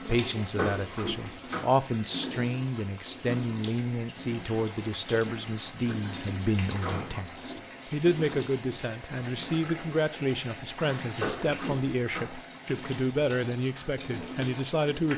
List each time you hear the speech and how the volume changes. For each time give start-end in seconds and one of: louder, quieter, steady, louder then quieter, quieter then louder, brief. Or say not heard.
0.0-15.1 steady.